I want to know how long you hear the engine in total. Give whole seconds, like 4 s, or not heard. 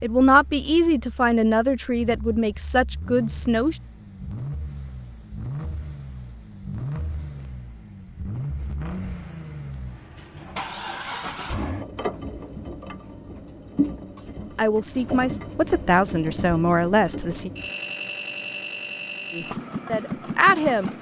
21 s.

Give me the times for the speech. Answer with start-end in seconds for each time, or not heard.
0.0-3.8, 14.6-17.5, 19.3-20.9.